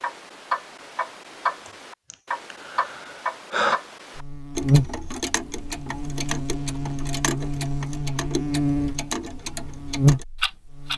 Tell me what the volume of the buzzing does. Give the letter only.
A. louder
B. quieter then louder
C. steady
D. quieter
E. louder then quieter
B.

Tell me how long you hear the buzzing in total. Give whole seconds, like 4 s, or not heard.
7 s.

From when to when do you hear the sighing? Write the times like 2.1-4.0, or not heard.
1.6-3.8.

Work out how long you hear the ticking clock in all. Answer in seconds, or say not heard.
11 s.